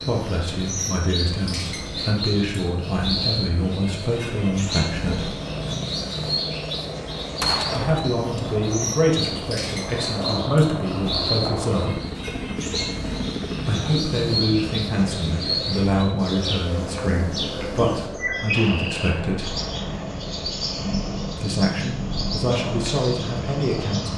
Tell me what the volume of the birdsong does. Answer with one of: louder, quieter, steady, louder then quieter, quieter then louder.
steady.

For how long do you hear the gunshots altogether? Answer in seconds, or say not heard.
2 s.